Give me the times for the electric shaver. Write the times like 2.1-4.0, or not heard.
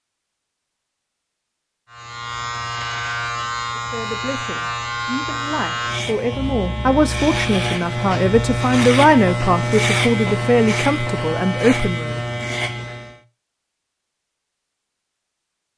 1.9-13.2.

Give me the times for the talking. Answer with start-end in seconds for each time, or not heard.
3.8-12.2.